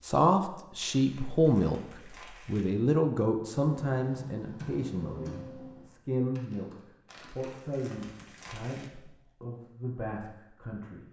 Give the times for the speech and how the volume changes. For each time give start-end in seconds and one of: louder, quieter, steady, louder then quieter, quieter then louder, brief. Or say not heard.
0.0-11.0 quieter.